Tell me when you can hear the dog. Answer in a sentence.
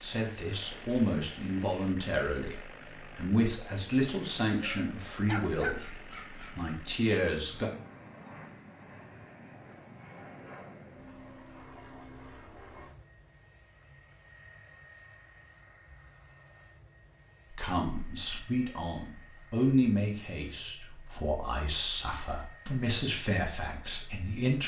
The dog can be heard from 4.5 to 6.5 s.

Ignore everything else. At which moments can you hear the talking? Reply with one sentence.
The talking can be heard from 0.0 to 7.7 s and from 17.5 to 24.6 s.